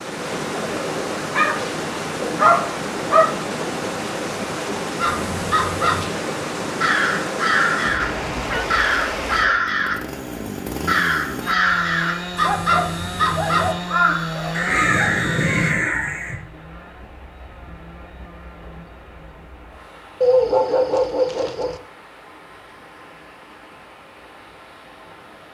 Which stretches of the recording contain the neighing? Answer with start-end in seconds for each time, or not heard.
7.8-8.7.